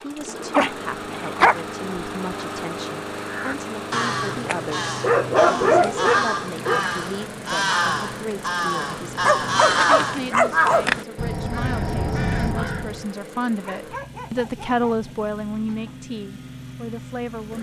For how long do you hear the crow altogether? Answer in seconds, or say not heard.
10 s.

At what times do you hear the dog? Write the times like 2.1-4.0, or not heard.
0.5-1.6, 5.0-6.8, 9.2-10.9, 13.6-15.9.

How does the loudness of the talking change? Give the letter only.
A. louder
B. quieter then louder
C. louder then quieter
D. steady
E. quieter
A.